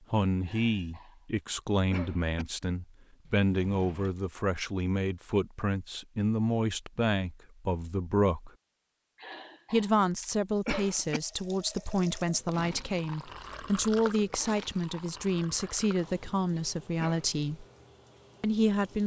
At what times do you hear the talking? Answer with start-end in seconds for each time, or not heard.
0.1-8.5, 9.7-17.6, 18.4-19.0.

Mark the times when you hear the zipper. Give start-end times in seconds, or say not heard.
not heard.